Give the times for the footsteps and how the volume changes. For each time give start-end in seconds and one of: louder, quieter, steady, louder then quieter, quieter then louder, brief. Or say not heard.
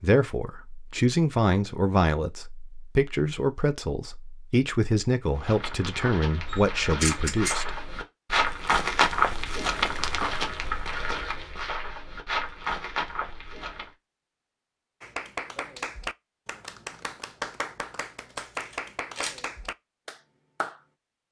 5.3-13.9 louder then quieter.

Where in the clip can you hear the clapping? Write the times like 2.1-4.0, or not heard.
15.0-20.8.